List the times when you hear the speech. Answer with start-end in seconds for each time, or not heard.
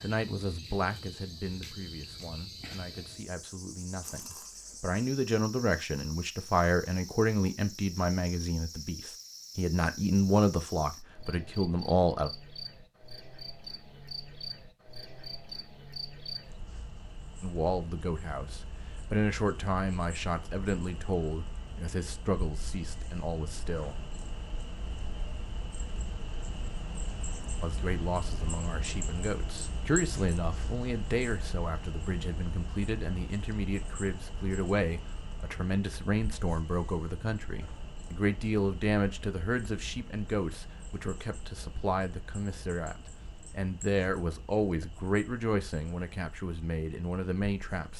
0.0-12.3, 17.4-24.0, 27.6-47.9.